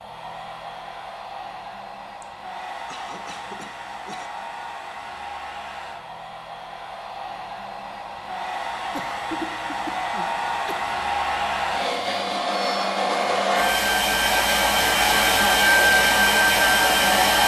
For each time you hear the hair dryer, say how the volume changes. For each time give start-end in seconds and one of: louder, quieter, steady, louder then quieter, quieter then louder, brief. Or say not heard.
0.0-17.4 louder.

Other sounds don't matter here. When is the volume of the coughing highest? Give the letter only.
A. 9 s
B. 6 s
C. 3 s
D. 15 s
A.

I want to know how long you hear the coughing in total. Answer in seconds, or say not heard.
4 s.